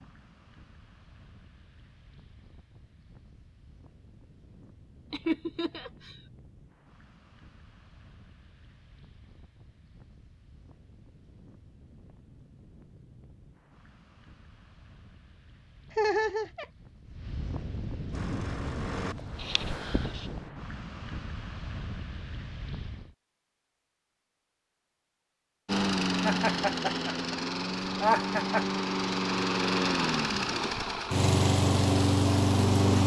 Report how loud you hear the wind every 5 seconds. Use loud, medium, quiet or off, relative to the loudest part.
quiet, quiet, quiet, loud, loud, off, off.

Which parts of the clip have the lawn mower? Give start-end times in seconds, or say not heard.
18.1-20.5, 25.6-33.0.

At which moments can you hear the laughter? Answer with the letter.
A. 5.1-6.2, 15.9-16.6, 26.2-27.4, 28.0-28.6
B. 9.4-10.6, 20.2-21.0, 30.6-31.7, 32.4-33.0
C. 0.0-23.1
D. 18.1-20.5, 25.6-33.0
A.